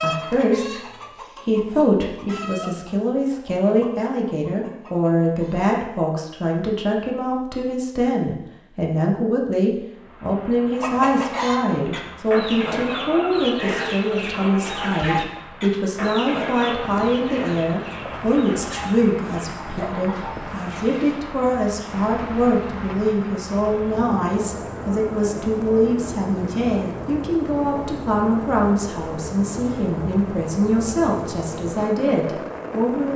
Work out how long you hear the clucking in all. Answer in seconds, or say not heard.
16 s.